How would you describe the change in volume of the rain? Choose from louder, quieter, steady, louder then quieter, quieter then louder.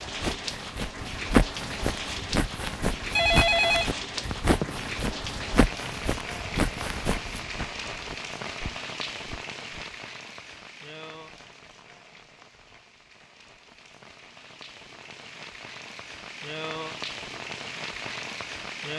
quieter then louder.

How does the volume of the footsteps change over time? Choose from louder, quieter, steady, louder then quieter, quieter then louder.
quieter.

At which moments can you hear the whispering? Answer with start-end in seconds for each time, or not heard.
not heard.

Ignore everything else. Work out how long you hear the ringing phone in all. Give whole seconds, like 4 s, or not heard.
2 s.